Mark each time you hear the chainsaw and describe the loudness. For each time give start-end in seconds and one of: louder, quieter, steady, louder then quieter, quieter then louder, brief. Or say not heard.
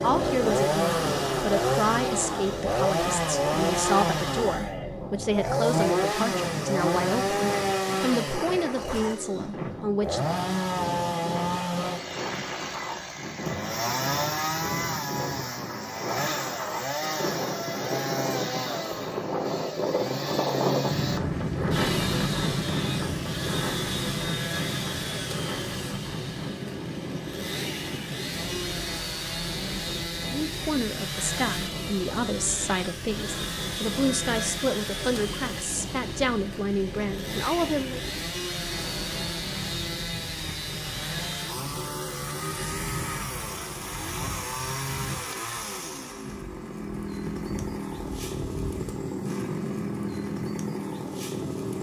0.0-51.7 quieter.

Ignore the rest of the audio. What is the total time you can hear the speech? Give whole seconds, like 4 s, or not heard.
18 s.